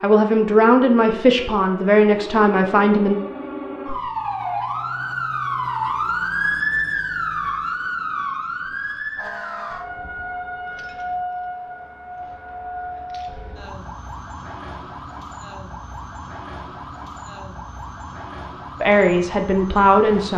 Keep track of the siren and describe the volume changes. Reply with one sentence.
The loudness of the siren goes up, then down.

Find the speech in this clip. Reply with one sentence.
You can hear the speech from 0.0 to 3.1 s and from 18.8 to 20.3 s.